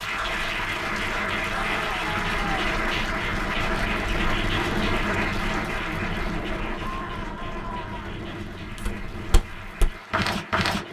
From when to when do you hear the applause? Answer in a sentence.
You can hear the applause from 0.0 to 10.8 s.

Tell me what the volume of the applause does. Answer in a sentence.
The loudness of the applause goes down.